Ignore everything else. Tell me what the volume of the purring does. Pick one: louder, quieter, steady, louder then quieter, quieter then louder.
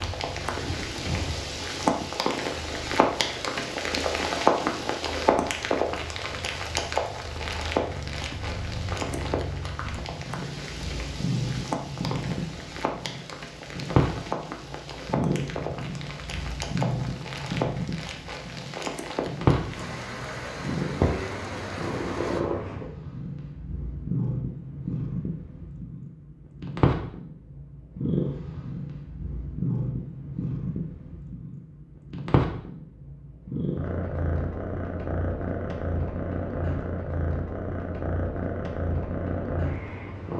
louder.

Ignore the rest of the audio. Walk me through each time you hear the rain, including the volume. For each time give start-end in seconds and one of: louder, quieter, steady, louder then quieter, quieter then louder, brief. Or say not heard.
0.0-22.4 quieter.